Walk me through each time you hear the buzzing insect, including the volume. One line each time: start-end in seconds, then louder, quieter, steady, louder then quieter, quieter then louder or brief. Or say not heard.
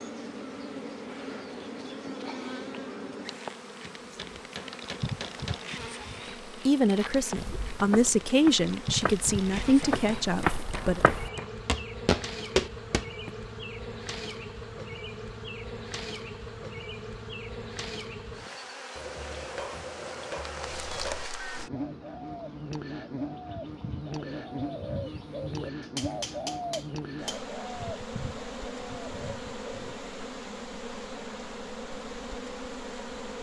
0.0-33.3 steady.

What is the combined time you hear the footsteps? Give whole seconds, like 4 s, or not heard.
6 s.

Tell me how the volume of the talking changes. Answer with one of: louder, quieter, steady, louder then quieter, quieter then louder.
louder then quieter.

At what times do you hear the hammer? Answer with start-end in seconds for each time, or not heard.
3.8-5.8, 9.0-11.6, 18.9-21.3, 25.8-27.4.